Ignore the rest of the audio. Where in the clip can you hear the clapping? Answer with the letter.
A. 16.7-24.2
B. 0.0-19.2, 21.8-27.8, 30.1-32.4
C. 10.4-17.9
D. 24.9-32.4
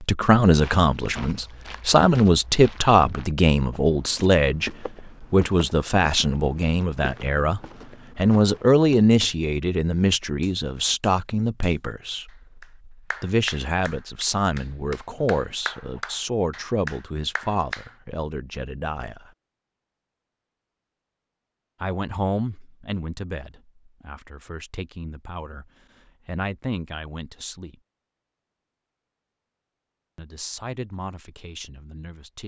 C.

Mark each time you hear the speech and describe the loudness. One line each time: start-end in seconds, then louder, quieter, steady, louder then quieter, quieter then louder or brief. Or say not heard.
0.0-19.2 quieter
21.8-27.8 quieter then louder
30.1-32.4 brief.